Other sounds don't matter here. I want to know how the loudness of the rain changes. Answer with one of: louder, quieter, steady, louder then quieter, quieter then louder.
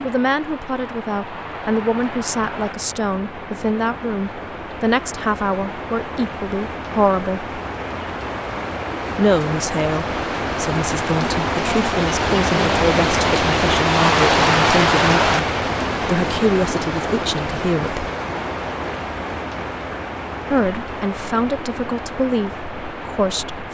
louder then quieter.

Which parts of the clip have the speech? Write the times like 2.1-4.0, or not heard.
0.0-7.5, 9.2-18.1, 20.5-23.6.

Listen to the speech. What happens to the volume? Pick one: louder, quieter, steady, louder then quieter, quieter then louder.
steady.